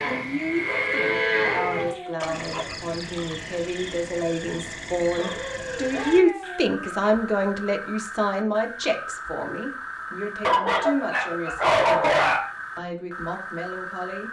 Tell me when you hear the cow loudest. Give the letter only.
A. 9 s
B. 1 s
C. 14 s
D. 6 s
B.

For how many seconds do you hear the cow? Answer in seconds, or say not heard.
2 s.